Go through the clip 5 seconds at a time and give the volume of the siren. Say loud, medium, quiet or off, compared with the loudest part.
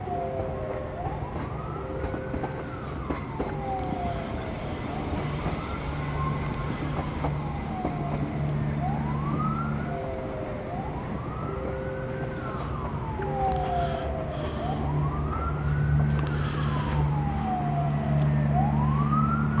medium, medium, medium, loud.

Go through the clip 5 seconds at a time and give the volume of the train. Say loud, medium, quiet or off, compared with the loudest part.
loud, loud, medium, medium.